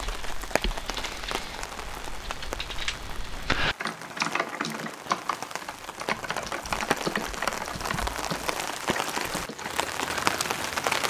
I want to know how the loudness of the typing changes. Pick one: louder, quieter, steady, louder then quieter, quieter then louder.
louder then quieter.